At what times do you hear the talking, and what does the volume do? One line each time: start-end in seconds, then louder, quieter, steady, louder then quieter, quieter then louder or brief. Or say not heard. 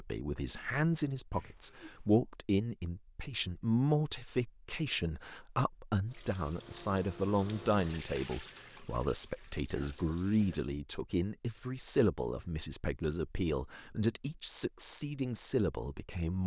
0.0-16.4 steady.